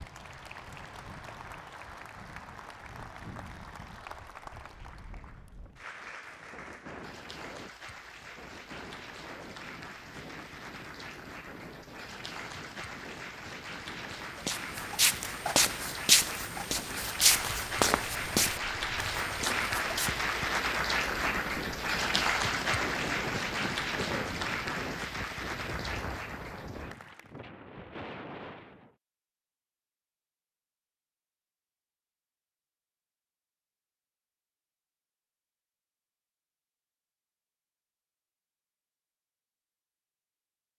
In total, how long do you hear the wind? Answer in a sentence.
The wind can be heard for 29 seconds in total.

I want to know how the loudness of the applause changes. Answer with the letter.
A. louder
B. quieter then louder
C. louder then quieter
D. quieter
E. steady
A.